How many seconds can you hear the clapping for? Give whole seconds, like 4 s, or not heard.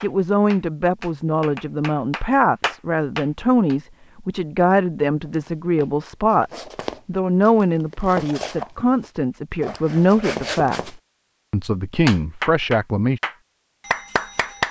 6 s.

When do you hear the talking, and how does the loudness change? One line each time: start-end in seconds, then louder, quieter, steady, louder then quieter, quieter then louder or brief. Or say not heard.
0.0-13.2 steady.